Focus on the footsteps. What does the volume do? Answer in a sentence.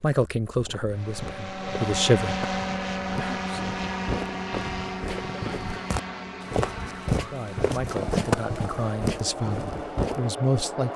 The loudness of the footsteps goes up.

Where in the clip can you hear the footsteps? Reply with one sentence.
You can hear the footsteps from 0.7 to 10.3 s.